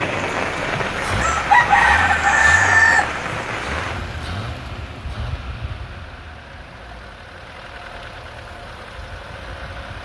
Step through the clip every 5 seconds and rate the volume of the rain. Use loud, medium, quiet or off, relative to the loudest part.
loud, quiet.